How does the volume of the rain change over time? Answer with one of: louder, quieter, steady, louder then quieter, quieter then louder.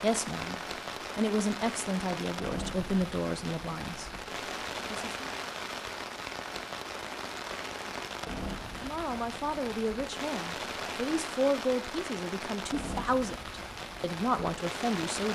steady.